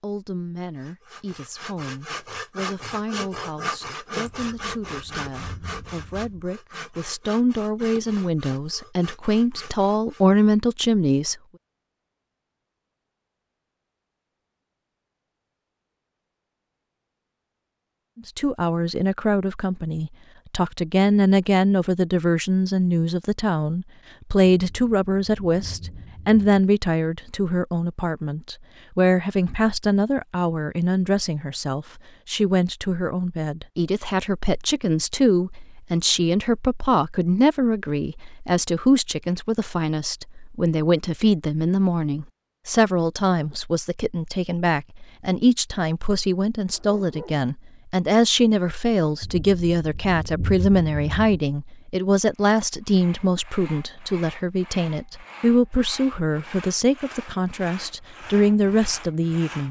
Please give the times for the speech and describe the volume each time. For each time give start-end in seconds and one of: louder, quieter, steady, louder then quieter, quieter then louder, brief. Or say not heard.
0.0-11.3 louder
18.1-59.6 steady.